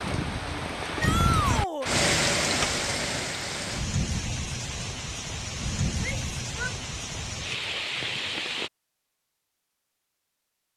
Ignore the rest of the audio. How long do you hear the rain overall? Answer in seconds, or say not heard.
9 s.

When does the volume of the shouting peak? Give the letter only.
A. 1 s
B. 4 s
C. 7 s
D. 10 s
A.